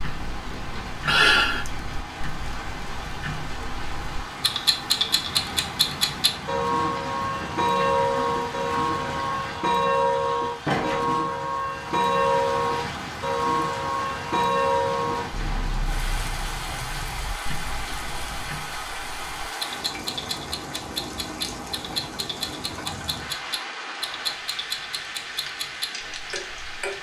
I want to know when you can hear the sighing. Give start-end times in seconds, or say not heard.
1.1-1.7.